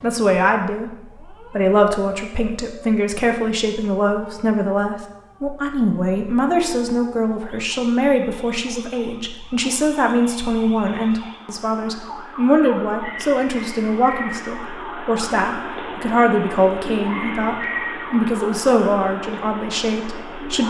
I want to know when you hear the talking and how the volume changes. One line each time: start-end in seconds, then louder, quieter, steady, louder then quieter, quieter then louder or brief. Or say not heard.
0.0-20.6 steady.